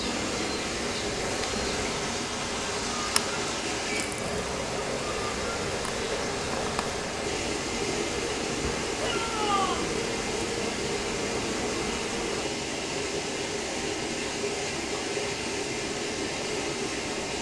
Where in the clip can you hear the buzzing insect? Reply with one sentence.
The buzzing insect can be heard from 0.0 to 12.5 s.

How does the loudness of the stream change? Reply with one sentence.
The loudness of the stream stays about the same.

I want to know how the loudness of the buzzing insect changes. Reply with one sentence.
The volume of the buzzing insect stays about the same.